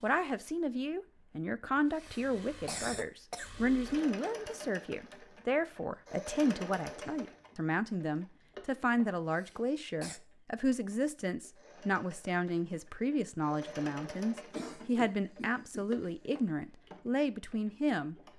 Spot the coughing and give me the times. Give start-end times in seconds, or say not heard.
1.8-3.5, 9.3-10.2, 14.5-16.4.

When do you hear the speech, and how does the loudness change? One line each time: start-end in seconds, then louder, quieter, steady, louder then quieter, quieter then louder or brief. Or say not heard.
0.0-18.1 steady.